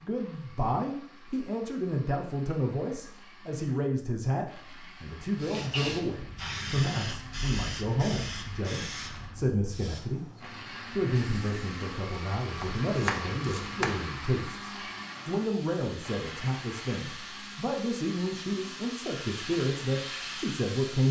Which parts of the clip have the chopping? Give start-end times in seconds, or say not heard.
12.6-14.1.